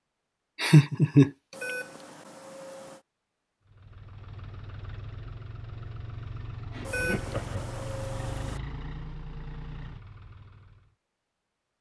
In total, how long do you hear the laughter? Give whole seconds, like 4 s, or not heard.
2 s.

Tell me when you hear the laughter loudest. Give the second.
1 s.